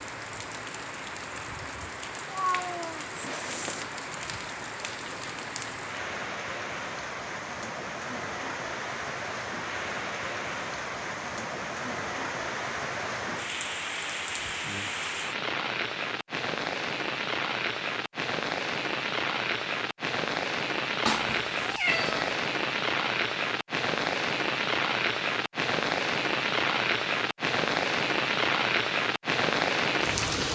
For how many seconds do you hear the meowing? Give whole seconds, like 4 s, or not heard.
3 s.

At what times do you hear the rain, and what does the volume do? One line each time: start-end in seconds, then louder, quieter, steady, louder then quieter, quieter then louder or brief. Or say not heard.
0.0-30.5 louder.